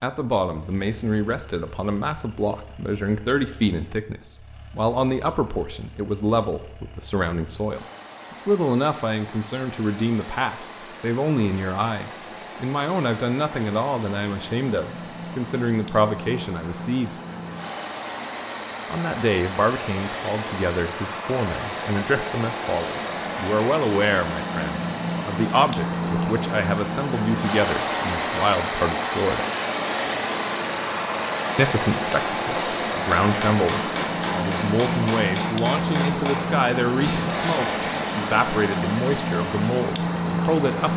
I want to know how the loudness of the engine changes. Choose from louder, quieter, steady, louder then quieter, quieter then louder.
louder.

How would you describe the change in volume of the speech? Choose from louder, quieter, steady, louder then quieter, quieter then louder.
steady.